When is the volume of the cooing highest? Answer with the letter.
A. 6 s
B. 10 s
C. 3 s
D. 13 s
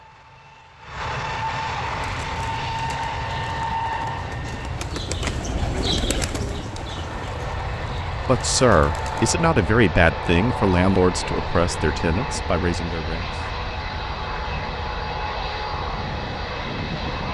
A.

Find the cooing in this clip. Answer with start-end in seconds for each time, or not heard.
1.9-9.3.